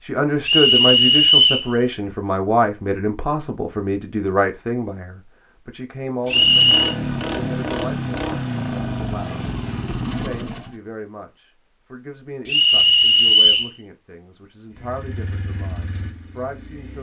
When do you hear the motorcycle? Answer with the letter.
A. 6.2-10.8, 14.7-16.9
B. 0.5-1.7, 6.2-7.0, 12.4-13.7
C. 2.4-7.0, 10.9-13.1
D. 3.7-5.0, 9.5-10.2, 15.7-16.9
A.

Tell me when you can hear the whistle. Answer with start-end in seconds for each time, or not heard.
0.5-1.7, 6.2-7.0, 12.4-13.7.